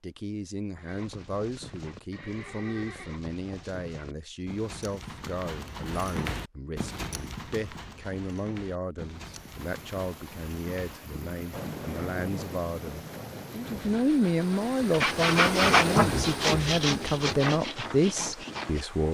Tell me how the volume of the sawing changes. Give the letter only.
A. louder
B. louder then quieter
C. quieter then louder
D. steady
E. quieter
B.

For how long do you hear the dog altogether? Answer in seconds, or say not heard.
not heard.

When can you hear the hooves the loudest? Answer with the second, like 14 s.
6 s.